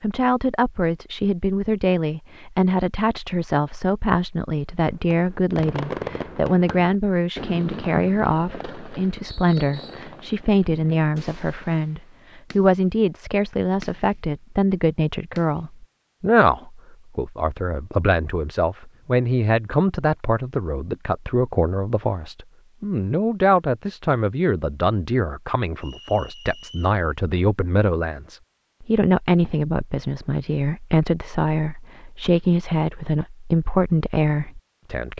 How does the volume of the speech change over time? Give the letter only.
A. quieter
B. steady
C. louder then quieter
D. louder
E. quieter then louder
B.